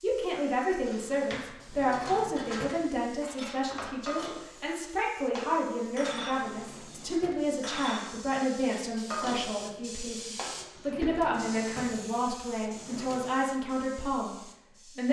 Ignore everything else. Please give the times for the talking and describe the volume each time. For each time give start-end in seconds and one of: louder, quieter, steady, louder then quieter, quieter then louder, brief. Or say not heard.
0.0-15.0 steady.